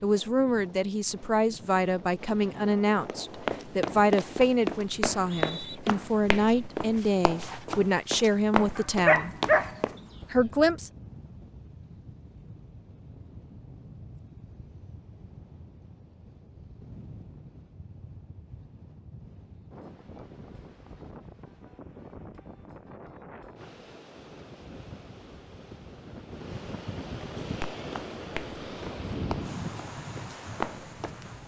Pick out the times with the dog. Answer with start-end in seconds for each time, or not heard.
8.8-10.2.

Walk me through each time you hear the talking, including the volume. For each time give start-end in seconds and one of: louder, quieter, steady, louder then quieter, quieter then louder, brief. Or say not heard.
0.0-9.3 steady
10.3-10.9 brief.